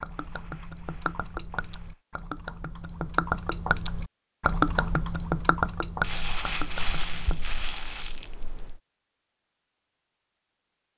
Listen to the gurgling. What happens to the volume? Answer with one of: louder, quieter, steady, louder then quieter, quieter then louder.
louder then quieter.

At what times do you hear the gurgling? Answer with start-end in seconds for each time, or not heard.
0.0-7.5.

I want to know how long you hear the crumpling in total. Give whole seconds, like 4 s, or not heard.
5 s.